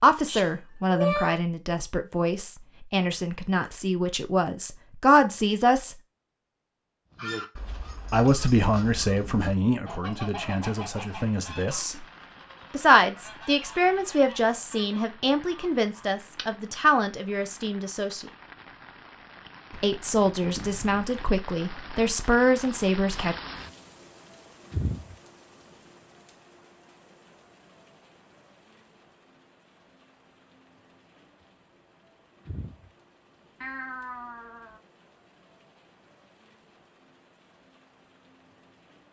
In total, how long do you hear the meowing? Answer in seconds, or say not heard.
4 s.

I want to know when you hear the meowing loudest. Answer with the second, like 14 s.
1 s.